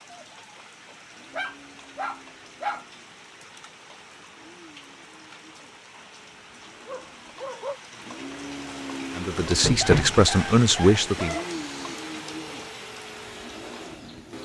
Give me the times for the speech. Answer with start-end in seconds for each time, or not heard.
9.2-11.3.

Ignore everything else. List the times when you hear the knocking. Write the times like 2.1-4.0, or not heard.
9.3-10.2.